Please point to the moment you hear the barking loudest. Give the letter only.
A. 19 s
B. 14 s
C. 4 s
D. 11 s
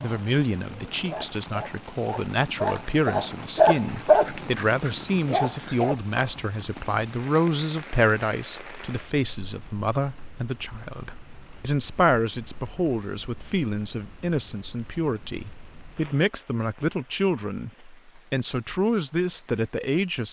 C.